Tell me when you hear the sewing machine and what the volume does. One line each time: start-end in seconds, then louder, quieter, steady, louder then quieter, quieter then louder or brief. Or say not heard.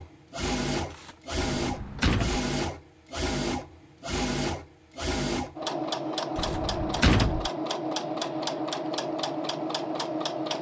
0.0-10.5 steady.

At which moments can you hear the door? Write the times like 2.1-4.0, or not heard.
1.6-2.4, 6.3-7.5.